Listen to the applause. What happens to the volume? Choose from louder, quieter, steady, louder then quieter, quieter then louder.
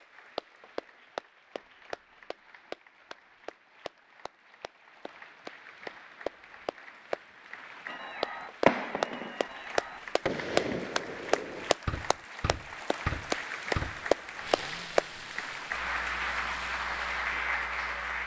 louder.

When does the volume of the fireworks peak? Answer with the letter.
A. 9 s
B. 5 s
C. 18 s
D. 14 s
A.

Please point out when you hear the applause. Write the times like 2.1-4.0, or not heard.
0.0-18.2.